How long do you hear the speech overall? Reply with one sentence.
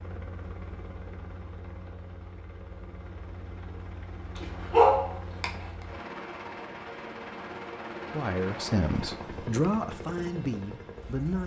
You can hear the speech for 3 seconds altogether.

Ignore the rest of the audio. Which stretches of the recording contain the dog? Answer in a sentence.
You can hear the dog from 4.3 to 5.7 s.